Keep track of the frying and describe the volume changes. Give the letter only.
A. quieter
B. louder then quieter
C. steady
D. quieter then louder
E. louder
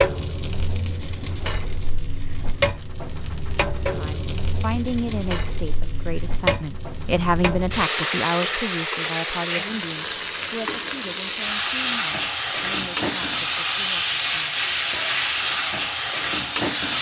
E.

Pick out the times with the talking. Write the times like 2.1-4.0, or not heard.
3.9-14.6.